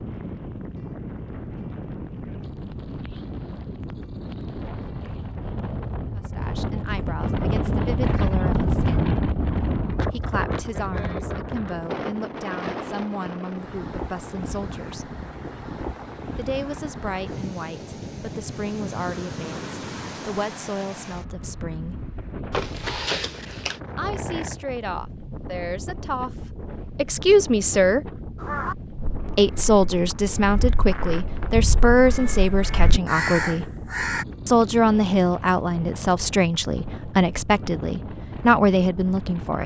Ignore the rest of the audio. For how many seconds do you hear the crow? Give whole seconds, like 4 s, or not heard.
6 s.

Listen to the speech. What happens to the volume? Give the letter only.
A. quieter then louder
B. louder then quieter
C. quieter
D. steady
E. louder
E.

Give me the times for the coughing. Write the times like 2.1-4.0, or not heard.
22.5-23.8.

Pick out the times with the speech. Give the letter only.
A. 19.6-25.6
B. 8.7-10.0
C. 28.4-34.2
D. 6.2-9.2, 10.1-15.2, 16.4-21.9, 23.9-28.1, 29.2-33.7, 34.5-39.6
D.